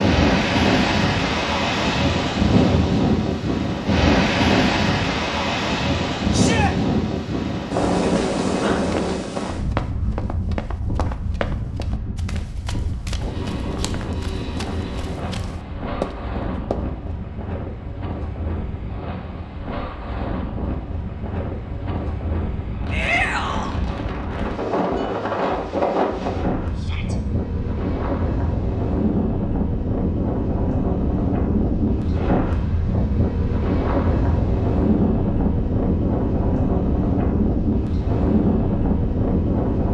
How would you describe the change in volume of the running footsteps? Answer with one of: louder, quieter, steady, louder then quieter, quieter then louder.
quieter then louder.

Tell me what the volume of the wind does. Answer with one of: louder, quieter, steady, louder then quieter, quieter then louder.
quieter then louder.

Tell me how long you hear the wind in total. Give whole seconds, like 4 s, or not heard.
40 s.